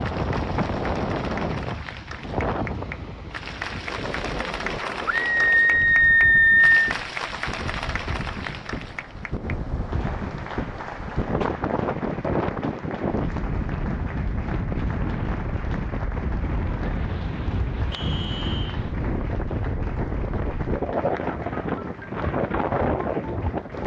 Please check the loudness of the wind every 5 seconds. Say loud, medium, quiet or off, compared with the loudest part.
loud, medium, loud, loud, loud.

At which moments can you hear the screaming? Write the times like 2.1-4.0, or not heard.
5.0-6.8.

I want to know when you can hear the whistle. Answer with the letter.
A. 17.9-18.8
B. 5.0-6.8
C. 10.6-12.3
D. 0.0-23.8
A.